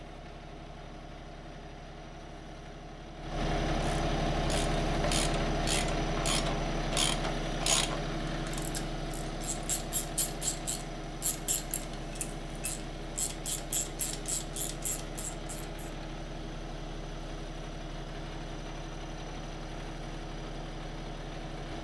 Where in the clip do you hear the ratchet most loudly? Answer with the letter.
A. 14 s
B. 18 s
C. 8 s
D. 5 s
C.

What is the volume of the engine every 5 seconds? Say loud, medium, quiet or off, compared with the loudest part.
loud, loud, medium, medium, medium.